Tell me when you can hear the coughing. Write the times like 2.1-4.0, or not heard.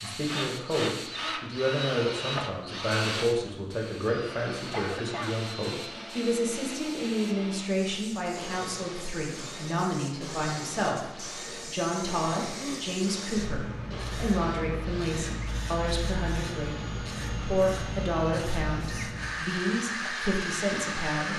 4.7-5.4, 12.3-12.9.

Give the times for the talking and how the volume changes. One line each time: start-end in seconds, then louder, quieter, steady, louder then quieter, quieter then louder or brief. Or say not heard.
0.0-21.3 steady.